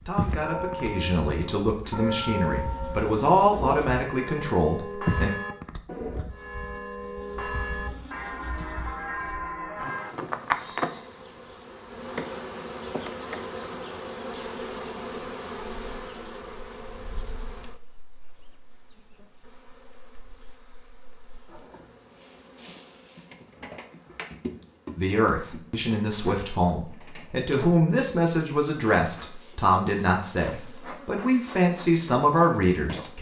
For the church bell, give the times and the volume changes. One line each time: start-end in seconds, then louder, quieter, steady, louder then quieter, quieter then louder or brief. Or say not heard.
0.3-10.3 steady.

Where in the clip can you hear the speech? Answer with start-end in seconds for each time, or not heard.
0.1-5.3, 24.9-33.1.